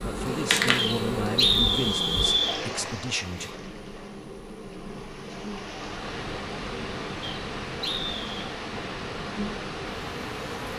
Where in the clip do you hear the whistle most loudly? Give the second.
2 s.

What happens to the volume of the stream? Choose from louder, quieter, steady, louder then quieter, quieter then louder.
quieter then louder.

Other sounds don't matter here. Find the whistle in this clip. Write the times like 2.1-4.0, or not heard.
0.8-2.6, 7.2-8.4.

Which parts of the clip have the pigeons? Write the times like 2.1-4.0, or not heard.
not heard.